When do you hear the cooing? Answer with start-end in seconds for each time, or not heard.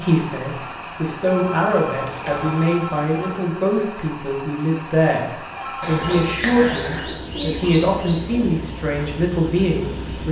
1.8-3.5, 5.8-8.5.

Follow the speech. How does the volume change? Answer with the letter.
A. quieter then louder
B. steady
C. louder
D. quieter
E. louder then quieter
B.